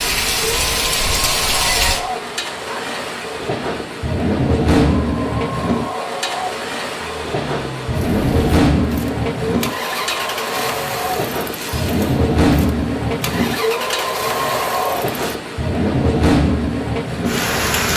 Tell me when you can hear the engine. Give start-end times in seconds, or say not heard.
7.0-15.3.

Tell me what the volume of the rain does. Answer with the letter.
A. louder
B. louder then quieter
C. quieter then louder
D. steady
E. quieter
D.